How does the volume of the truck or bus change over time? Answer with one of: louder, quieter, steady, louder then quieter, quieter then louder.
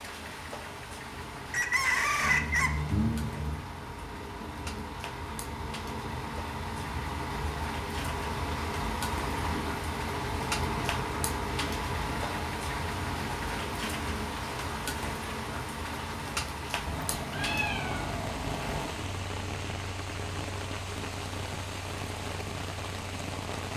louder then quieter.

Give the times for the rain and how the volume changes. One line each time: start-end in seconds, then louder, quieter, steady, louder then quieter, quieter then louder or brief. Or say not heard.
0.0-23.7 louder.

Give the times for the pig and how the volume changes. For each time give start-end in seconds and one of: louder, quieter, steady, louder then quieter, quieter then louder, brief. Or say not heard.
not heard.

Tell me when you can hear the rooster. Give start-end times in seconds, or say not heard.
1.5-2.8.